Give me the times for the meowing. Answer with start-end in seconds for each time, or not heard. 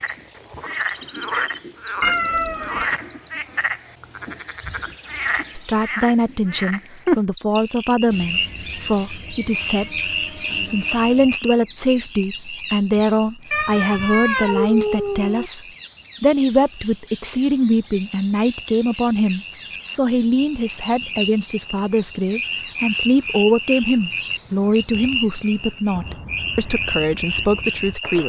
2.0-2.9, 13.5-15.5, 24.9-26.1.